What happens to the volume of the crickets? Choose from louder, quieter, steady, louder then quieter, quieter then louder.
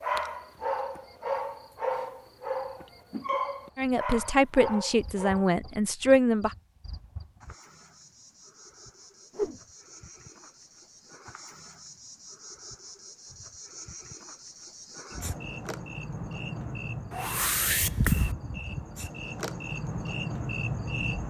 louder.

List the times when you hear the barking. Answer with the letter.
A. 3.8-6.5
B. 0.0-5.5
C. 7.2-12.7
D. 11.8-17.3
B.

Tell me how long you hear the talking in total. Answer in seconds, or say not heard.
3 s.